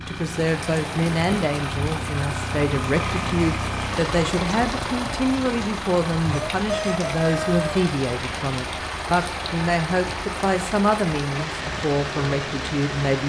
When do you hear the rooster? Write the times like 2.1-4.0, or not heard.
6.3-7.9.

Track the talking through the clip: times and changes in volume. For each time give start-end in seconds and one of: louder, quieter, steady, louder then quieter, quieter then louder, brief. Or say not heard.
0.0-13.2 steady.